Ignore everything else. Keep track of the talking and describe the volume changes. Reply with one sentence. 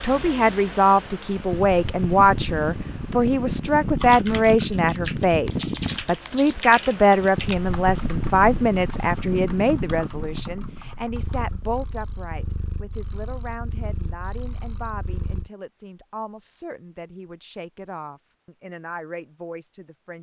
The loudness of the talking goes down.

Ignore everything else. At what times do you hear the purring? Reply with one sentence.
You can hear the purring from 11.1 to 15.5 s.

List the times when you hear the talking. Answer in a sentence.
You can hear the talking from 0.0 to 20.1 s.